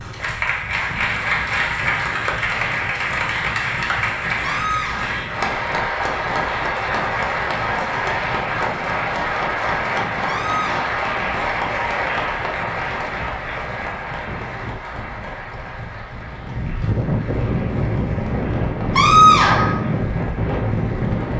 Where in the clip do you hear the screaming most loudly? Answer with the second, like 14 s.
19 s.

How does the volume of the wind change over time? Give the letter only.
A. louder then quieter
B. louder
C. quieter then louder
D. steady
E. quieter
B.